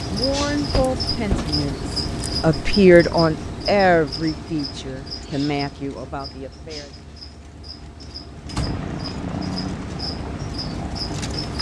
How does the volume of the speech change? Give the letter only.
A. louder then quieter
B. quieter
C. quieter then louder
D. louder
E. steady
A.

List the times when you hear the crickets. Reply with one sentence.
You can hear the crickets from 0.0 to 11.5 s.